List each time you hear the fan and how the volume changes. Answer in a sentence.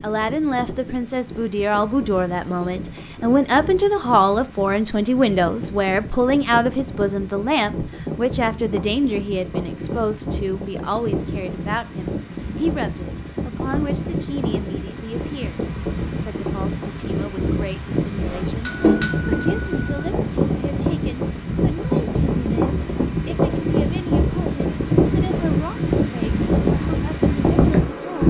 You can hear the fan from 0.0 to 28.2 s, getting louder.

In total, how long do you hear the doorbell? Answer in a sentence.
You can hear the doorbell for 2 seconds altogether.